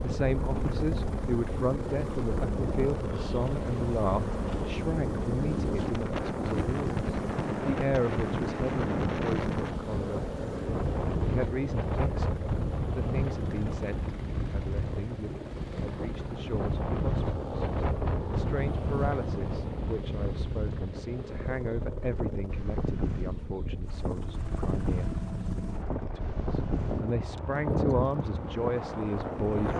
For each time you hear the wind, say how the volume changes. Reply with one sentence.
The wind can be heard from 0.0 to 29.7 s, at a steady volume.